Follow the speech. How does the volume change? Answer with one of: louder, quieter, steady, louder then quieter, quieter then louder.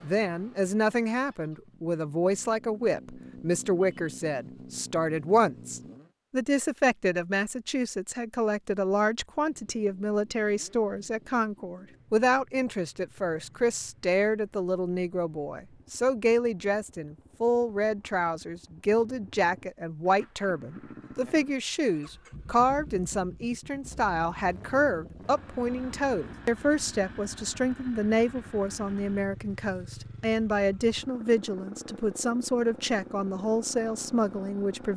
steady.